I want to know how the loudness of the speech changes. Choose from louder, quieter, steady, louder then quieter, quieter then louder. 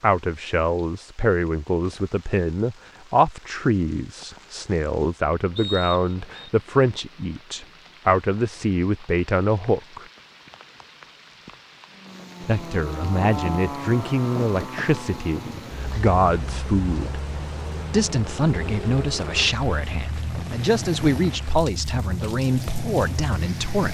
steady.